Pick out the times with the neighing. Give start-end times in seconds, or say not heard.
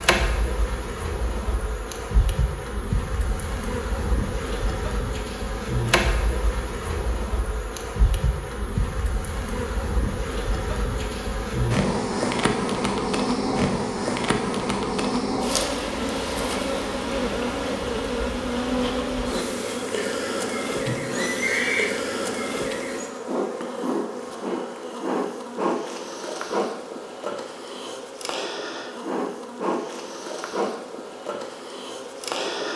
20.9-21.9.